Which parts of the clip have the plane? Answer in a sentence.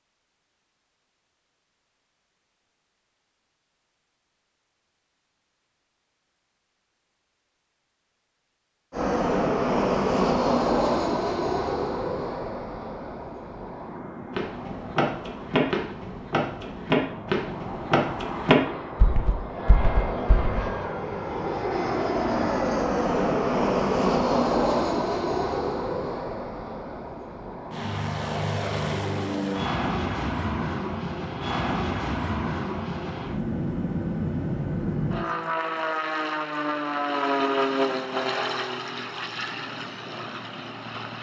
You can hear the plane from 8.9 to 41.1 s.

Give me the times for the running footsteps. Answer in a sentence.
You can hear the running footsteps from 14.3 to 20.6 s.